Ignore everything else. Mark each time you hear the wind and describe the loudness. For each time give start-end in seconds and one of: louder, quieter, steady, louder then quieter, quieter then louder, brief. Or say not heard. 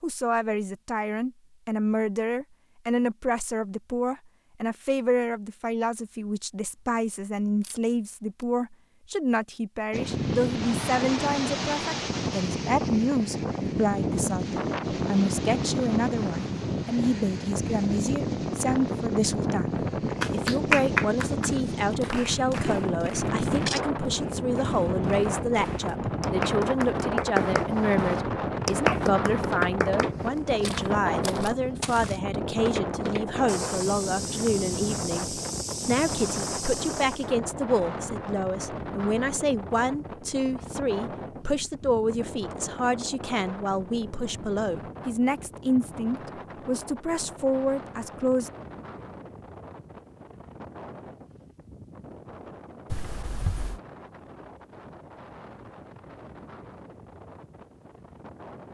9.9-58.6 quieter.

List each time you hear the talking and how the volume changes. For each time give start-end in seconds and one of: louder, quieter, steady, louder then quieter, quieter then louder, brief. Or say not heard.
0.0-48.5 steady.